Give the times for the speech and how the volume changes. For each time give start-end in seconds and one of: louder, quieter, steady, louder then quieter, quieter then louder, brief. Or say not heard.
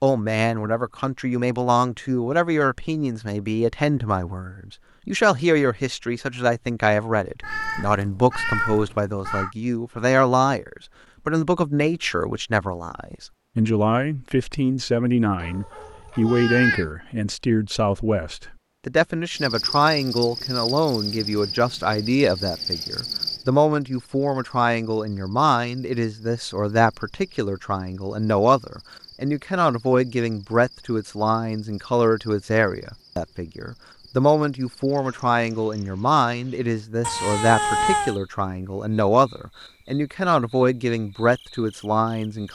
0.0-42.5 steady.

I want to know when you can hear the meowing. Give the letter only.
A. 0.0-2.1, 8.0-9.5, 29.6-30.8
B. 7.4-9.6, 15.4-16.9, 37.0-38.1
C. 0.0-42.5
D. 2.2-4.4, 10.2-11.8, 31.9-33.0
B.